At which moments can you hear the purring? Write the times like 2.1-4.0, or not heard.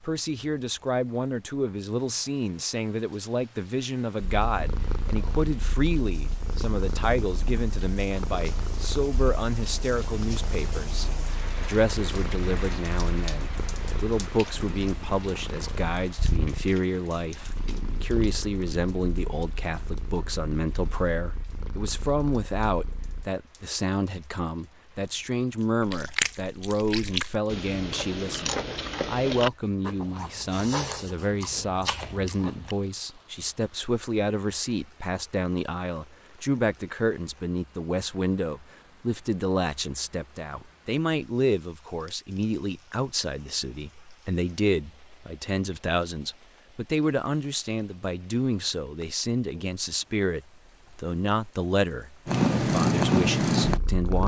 4.2-23.3, 52.2-54.2.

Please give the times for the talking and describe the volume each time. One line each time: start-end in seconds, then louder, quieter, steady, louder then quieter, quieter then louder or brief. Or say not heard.
0.0-54.2 steady.